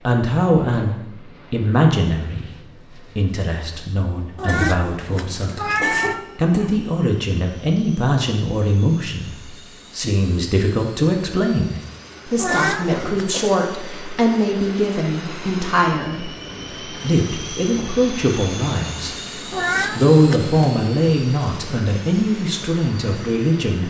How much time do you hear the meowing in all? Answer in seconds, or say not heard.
4 s.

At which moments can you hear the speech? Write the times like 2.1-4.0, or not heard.
0.1-2.5, 3.1-16.3, 17.0-19.1, 19.9-23.8.